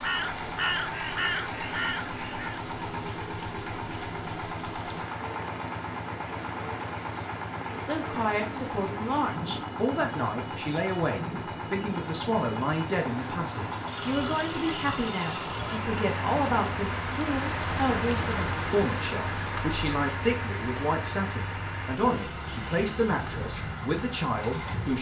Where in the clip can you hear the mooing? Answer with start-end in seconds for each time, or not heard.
not heard.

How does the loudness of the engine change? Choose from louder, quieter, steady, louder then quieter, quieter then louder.
steady.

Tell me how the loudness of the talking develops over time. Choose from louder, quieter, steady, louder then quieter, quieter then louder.
steady.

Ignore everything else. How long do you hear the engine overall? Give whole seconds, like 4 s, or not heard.
25 s.